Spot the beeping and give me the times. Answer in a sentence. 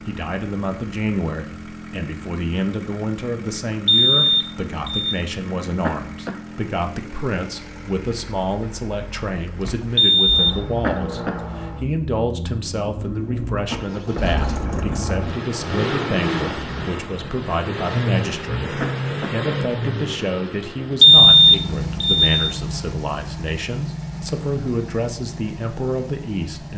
You can hear the beeping from 3.9 to 5.2 s, from 9.9 to 10.6 s and from 21.0 to 22.3 s.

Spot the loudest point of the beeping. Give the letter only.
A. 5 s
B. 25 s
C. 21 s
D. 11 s
C.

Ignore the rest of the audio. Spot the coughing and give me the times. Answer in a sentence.
You can hear the coughing from 5.8 to 6.5 s, from 10.8 to 11.4 s and from 18.8 to 19.4 s.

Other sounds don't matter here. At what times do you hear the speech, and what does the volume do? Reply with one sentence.
You can hear the speech from 0.1 to 26.7 s, at a steady volume.